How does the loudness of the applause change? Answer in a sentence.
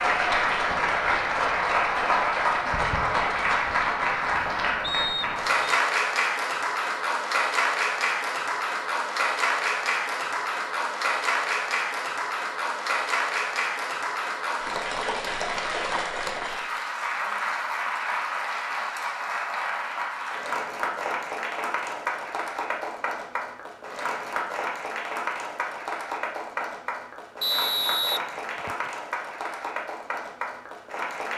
The loudness of the applause goes down.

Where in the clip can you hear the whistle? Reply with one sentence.
You can hear the whistle from 4.8 to 5.8 s and from 27.4 to 28.9 s.